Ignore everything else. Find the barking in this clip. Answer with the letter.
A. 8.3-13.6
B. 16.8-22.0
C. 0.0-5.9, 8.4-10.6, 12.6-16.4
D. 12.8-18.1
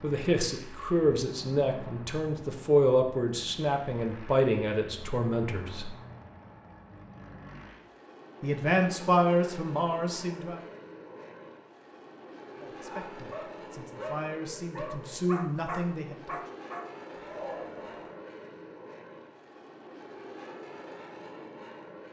D.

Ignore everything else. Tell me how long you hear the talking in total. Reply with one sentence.
You can hear the talking for 12 seconds altogether.